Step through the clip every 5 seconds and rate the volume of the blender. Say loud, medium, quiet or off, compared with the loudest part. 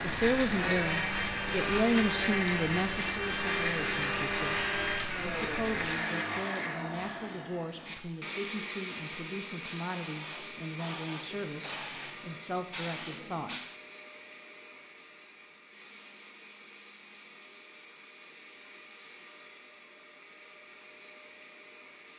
loud, medium, quiet, quiet, quiet.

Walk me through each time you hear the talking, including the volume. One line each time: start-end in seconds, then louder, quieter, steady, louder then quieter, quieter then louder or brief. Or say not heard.
0.0-13.5 quieter.